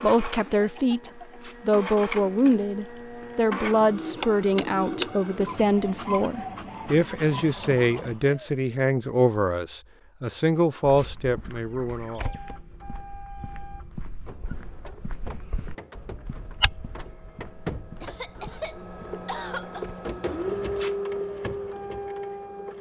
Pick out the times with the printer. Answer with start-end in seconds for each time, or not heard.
0.0-8.2, 11.2-22.7.